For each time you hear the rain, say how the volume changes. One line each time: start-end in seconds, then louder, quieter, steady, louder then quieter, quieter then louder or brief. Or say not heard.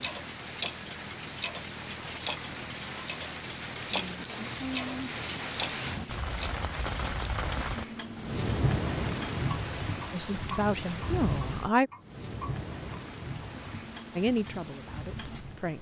0.0-15.7 louder then quieter.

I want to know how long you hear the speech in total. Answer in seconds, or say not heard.
3 s.